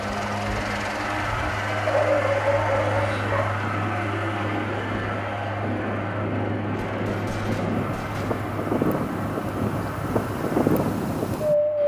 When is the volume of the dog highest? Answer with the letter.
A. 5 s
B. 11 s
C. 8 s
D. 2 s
D.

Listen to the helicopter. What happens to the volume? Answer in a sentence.
The volume of the helicopter goes down.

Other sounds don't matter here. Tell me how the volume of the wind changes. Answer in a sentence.
The loudness of the wind goes up.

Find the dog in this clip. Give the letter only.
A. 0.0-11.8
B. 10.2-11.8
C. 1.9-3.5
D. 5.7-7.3
C.